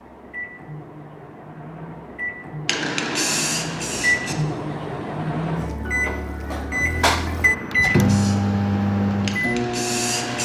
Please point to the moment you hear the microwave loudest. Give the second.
8 s.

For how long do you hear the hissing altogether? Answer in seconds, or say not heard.
4 s.